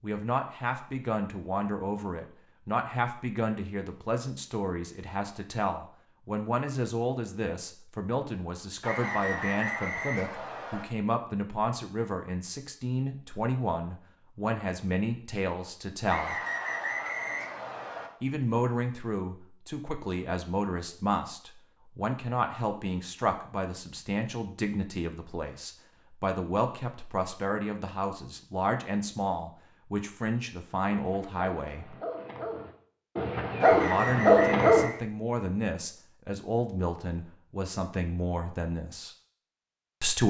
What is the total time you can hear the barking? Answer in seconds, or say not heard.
4 s.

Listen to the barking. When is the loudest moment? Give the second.
34 s.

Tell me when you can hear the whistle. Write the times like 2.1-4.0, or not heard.
8.8-10.8, 16.1-18.1, 33.6-35.0.